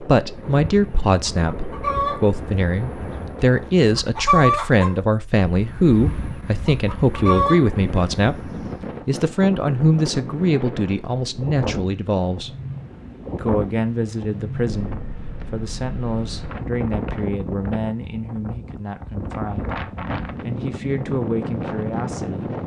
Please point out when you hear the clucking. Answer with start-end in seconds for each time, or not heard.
0.3-9.0.